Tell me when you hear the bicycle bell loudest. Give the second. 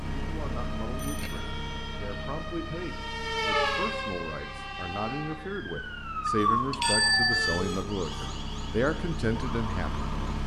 7 s.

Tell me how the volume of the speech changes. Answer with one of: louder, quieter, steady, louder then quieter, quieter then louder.
louder.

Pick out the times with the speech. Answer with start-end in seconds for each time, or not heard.
0.2-10.1.